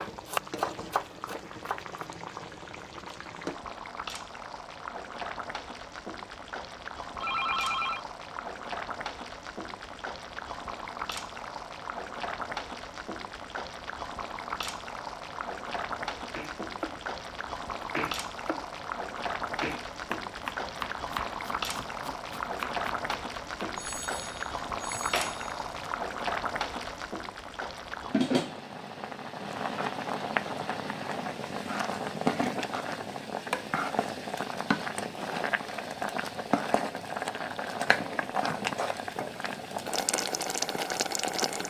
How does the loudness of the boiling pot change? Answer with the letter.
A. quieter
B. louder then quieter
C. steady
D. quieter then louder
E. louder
E.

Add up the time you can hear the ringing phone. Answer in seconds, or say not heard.
3 s.